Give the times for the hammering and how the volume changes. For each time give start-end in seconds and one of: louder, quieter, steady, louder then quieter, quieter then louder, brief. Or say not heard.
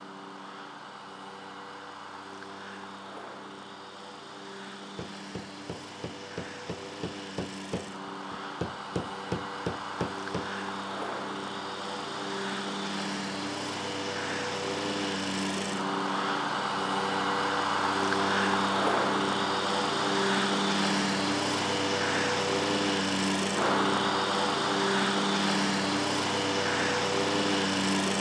5.0-10.5 louder.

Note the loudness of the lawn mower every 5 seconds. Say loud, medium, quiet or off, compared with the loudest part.
quiet, quiet, medium, loud, loud, loud.